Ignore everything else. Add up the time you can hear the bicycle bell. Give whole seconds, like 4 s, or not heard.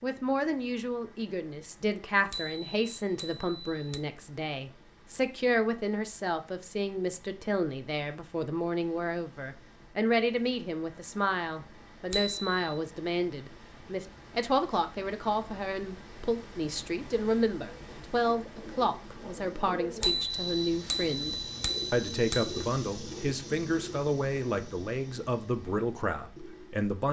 5 s.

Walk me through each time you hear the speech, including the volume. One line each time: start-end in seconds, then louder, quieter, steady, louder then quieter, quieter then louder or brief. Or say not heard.
0.0-27.0 steady.